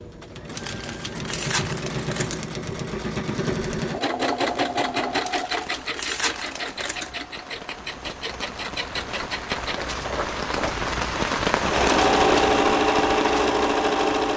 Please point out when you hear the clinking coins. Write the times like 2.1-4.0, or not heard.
not heard.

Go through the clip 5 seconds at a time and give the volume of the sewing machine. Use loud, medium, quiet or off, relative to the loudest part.
medium, medium, loud.